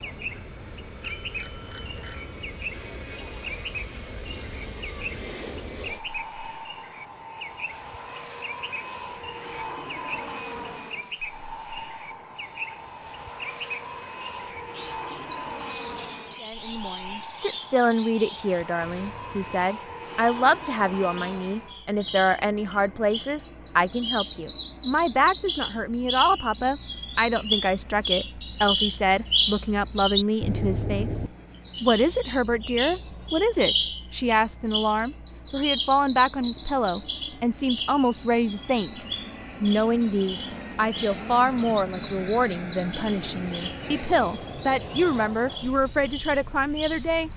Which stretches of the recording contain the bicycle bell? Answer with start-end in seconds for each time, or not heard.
1.0-2.4.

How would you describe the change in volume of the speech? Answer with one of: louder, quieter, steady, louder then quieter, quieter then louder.
steady.